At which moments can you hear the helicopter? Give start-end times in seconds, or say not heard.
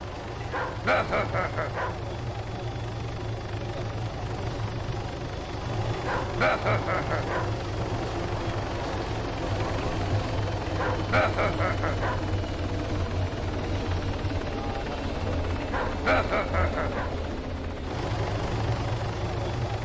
0.0-19.7.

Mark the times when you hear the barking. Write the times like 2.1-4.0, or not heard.
0.4-1.9, 5.9-7.5, 10.7-12.2, 15.6-17.1.